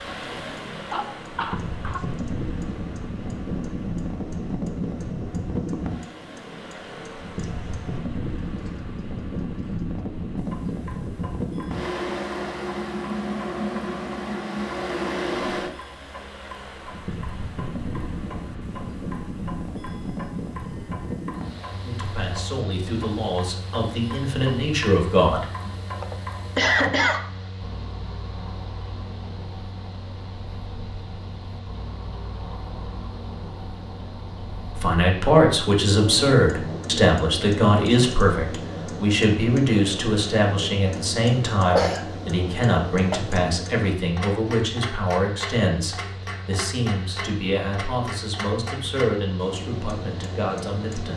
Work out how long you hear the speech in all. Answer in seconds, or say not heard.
20 s.